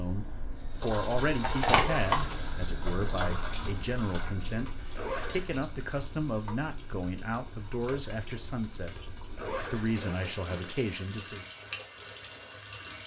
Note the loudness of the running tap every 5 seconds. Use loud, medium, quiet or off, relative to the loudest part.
loud, quiet, medium.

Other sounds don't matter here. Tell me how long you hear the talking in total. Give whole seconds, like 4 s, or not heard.
11 s.